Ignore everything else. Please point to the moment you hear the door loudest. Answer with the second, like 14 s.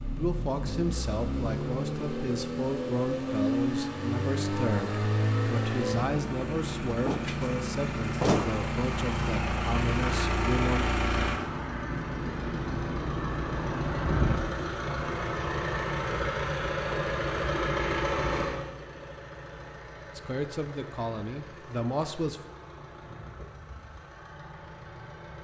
8 s.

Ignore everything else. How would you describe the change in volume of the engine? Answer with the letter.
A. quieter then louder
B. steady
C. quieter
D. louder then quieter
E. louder
C.